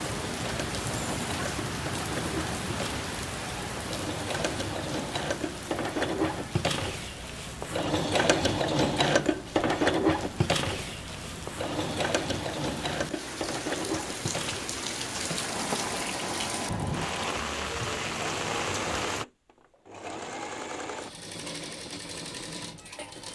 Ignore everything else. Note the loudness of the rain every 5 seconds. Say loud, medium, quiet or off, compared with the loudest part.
loud, medium, medium, loud, off.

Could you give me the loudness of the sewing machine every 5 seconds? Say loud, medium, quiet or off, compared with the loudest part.
medium, loud, loud, medium, medium.